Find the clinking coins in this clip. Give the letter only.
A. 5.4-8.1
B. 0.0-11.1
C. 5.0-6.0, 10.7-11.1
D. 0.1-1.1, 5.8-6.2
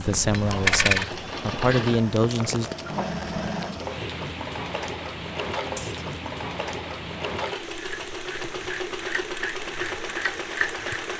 D.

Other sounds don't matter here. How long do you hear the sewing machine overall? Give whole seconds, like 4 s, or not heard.
11 s.